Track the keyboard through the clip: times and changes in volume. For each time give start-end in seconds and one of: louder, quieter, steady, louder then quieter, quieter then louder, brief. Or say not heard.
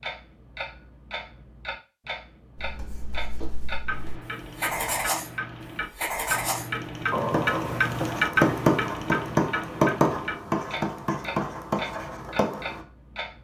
not heard.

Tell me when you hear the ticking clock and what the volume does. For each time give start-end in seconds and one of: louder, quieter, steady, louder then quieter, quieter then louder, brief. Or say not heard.
0.0-13.3 louder then quieter.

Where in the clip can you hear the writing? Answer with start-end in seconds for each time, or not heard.
2.5-12.8.